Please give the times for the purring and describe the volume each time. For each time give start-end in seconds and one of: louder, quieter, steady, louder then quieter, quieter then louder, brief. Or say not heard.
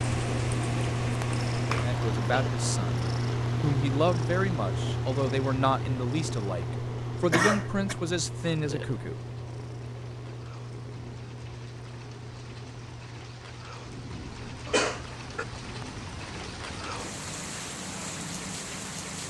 0.0-19.2 quieter.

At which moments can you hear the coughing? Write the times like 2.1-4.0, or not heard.
1.6-2.5, 7.3-8.0, 14.7-15.4.